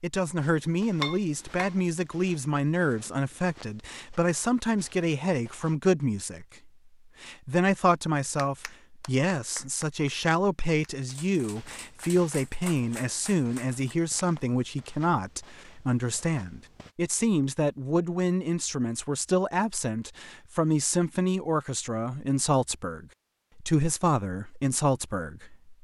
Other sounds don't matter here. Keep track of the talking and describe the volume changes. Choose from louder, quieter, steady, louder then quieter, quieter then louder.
steady.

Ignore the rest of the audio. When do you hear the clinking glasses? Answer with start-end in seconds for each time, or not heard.
1.0-1.8.